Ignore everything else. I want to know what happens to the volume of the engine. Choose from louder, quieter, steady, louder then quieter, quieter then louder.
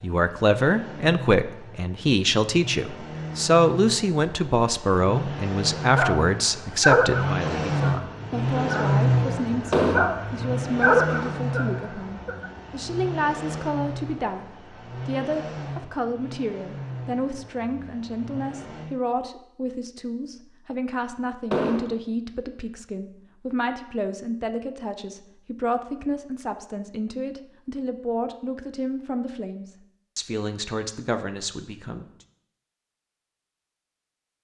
louder then quieter.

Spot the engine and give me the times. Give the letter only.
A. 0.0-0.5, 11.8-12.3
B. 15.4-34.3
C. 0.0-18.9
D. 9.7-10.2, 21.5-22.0
C.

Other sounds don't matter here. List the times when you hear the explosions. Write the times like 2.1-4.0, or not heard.
9.7-10.2, 21.5-22.0.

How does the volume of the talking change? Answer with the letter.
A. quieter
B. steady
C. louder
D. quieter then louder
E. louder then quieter
A.